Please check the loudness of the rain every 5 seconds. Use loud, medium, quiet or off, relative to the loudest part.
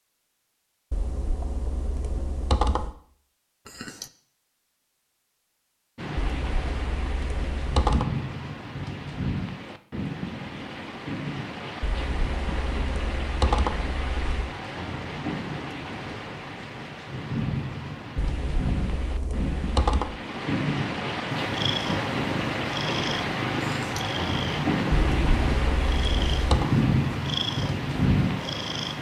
off, medium, medium, medium, loud, loud.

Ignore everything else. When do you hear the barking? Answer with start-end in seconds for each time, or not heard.
not heard.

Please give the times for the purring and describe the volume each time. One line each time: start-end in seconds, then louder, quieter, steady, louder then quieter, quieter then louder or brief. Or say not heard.
21.3-28.9 steady.